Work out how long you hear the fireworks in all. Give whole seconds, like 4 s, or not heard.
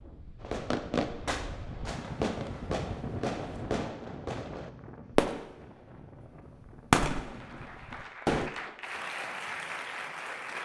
8 s.